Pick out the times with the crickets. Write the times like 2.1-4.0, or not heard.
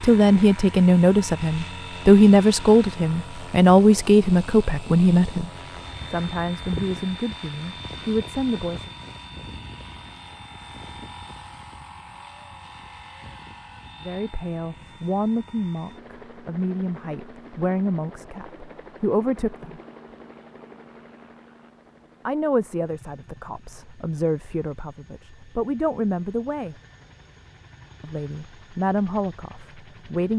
not heard.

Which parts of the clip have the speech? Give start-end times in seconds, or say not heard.
0.0-8.9, 14.0-19.8, 22.2-26.8, 28.0-30.3.